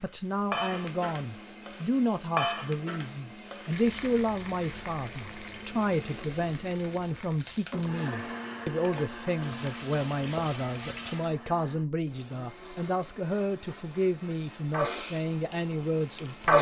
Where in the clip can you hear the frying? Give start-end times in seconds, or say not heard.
0.1-11.3, 14.7-16.5.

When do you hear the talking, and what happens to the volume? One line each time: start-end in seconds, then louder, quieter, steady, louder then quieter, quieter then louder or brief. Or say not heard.
0.0-16.5 steady.